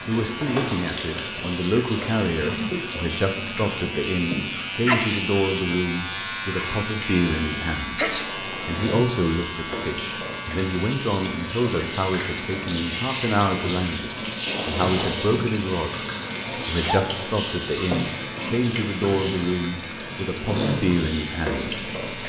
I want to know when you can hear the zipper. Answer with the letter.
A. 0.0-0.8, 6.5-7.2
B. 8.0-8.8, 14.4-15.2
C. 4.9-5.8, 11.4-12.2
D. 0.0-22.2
B.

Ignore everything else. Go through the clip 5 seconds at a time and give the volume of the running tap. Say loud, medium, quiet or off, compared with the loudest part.
loud, medium, loud, loud, loud.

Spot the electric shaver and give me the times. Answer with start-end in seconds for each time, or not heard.
0.0-22.2.